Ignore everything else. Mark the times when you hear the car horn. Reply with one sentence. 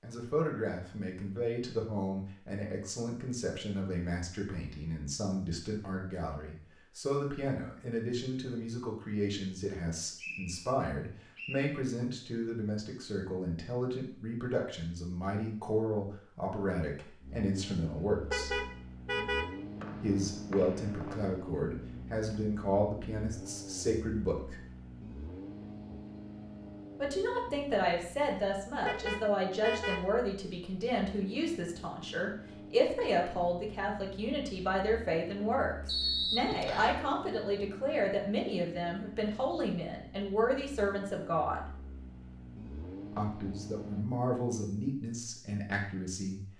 The car horn can be heard from 18.2 to 19.4 s and from 28.9 to 30.0 s.